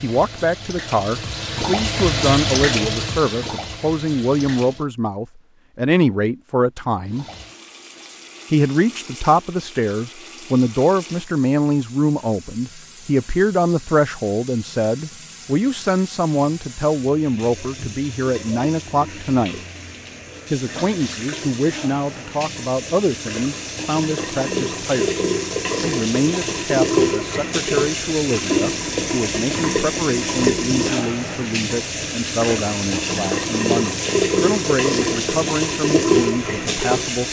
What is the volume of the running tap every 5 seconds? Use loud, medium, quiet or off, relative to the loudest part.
medium, quiet, quiet, quiet, medium, loud, loud, loud.